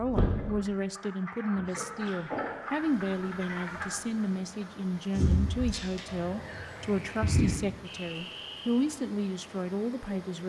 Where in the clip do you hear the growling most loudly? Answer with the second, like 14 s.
2 s.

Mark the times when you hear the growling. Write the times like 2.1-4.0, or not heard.
1.5-2.5, 5.7-6.9.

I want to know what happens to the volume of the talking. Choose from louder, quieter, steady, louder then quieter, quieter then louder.
steady.